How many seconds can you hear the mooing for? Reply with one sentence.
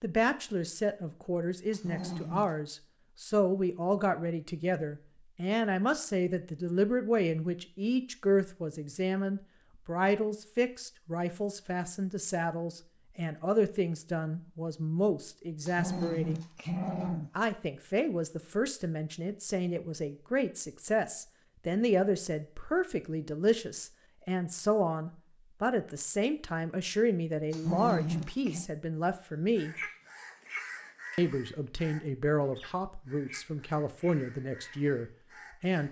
The mooing can't be heard in this clip.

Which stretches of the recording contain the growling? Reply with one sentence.
The growling can be heard from 1.7 to 2.5 s, from 15.7 to 17.3 s and from 27.5 to 28.6 s.